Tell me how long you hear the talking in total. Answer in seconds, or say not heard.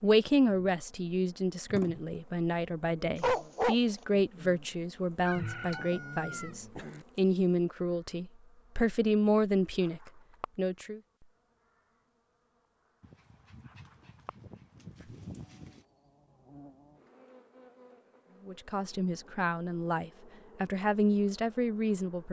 15 s.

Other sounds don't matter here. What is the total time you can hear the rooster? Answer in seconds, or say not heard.
2 s.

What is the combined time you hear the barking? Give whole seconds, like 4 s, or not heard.
3 s.